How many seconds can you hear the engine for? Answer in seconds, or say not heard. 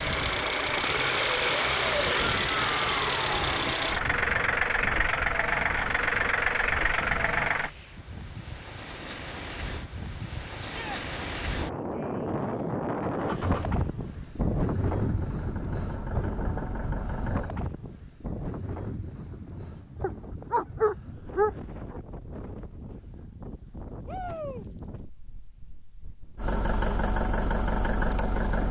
14 s.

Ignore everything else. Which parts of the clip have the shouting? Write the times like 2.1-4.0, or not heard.
2.0-3.5, 10.6-11.0, 24.1-24.6.